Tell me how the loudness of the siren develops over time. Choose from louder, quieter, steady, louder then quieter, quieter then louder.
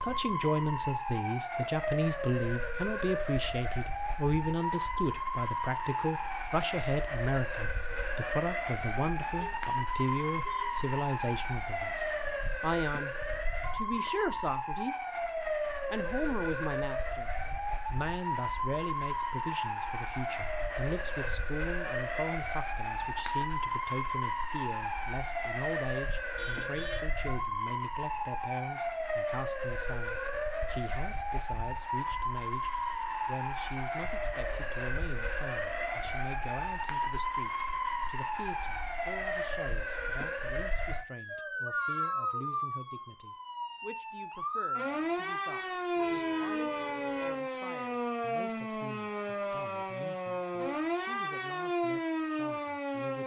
steady.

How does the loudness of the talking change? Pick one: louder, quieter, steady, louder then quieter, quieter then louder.
quieter.